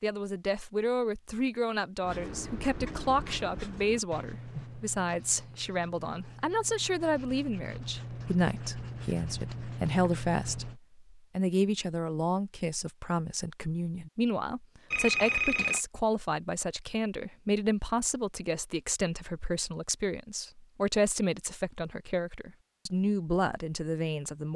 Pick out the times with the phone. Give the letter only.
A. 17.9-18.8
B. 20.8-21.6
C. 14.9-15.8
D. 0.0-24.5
C.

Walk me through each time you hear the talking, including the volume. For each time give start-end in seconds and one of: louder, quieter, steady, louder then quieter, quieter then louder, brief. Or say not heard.
0.0-24.5 steady.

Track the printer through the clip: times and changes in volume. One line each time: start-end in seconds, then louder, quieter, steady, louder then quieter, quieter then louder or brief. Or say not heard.
not heard.